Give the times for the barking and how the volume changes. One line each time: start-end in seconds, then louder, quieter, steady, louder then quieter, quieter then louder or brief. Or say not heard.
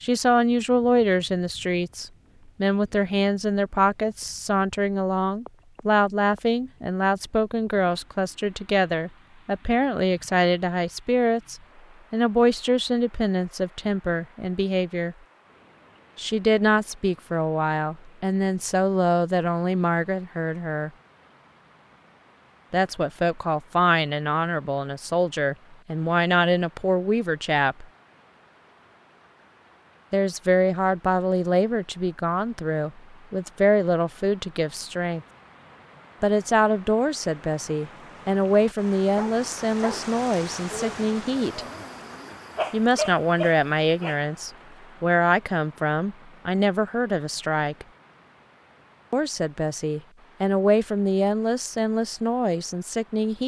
39.1-44.2 quieter then louder.